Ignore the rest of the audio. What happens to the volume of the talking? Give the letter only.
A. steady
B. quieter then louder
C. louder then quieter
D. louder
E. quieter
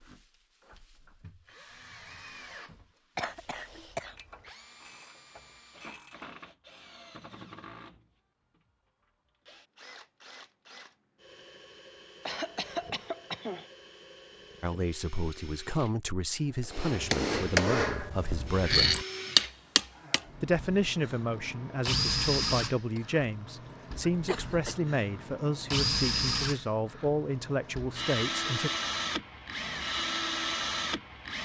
A.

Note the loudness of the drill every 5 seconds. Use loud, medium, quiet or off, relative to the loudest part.
quiet, quiet, quiet, medium, loud, loud, loud.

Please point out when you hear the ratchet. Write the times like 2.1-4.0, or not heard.
4.2-6.3.